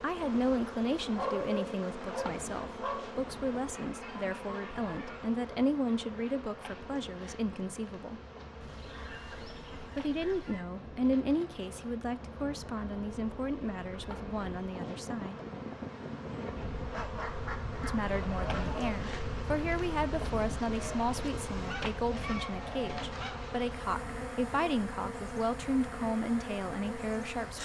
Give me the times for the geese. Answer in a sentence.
You can hear the geese from 3.6 to 5.3 s, from 8.6 to 10.6 s, from 16.9 to 18.9 s and from 20.8 to 23.6 s.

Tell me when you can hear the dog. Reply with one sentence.
You can hear the dog from 1.1 to 3.1 s.